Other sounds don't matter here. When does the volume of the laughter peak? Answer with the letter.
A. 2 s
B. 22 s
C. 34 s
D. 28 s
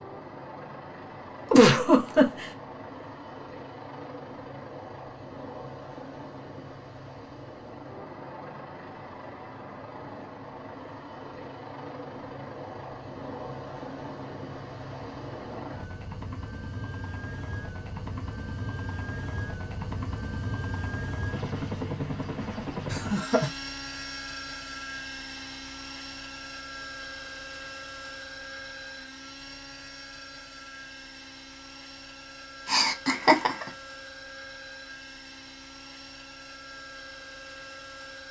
A.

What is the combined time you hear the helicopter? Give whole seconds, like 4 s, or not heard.
38 s.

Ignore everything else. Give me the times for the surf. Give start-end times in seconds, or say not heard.
not heard.